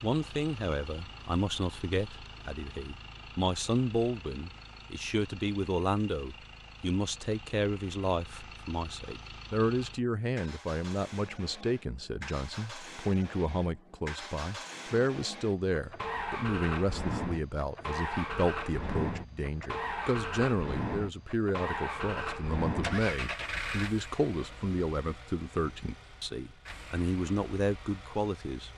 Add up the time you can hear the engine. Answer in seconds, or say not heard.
29 s.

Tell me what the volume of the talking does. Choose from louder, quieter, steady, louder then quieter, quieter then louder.
steady.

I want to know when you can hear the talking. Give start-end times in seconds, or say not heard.
0.0-28.7.